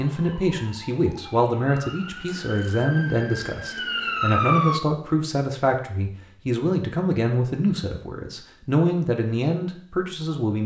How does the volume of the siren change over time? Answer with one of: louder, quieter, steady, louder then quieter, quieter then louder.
louder.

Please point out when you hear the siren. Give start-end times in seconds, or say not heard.
0.0-4.8.